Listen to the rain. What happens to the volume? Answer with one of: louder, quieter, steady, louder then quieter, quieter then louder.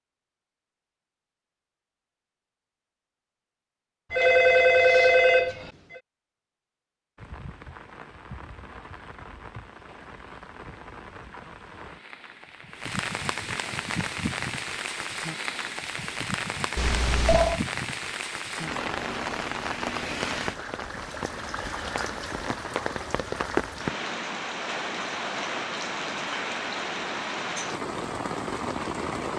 louder.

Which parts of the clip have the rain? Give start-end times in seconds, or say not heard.
7.2-29.3.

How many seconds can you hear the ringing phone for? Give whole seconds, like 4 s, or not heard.
3 s.